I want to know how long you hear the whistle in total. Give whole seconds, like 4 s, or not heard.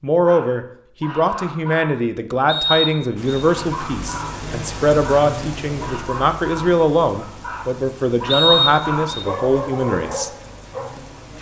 2 s.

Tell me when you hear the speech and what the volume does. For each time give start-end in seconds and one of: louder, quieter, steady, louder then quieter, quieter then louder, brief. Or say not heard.
0.0-10.3 steady.